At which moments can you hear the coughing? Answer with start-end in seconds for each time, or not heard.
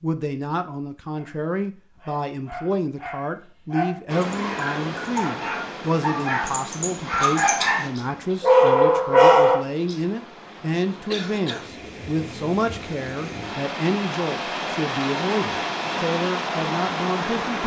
11.1-11.7.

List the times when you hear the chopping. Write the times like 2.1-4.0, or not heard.
not heard.